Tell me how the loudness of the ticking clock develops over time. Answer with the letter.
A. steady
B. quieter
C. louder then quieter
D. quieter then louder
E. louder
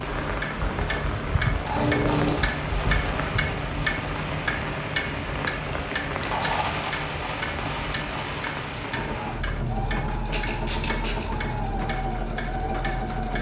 B.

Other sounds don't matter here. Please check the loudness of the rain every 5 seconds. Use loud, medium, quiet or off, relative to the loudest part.
loud, loud, medium.